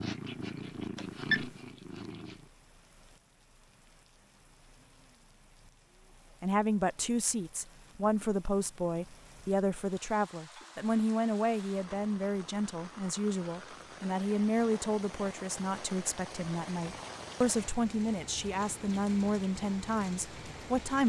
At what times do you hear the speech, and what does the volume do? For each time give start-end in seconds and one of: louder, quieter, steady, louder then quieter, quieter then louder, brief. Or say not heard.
6.4-21.0 steady.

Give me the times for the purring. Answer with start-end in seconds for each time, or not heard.
0.0-2.5.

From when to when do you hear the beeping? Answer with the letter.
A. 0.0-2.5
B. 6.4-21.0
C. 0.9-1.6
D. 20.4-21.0
C.